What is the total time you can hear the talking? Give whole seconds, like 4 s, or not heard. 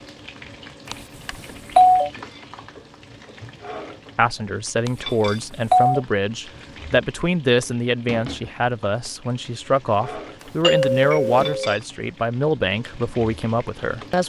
10 s.